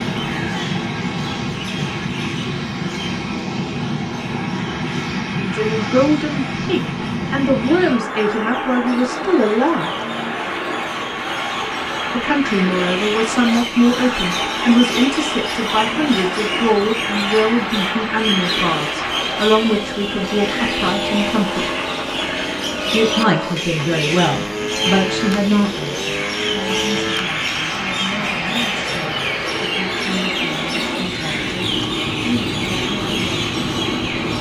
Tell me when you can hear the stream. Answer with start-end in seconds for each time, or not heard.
not heard.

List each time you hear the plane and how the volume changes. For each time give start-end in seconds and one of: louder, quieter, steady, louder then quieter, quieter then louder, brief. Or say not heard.
0.0-34.3 steady.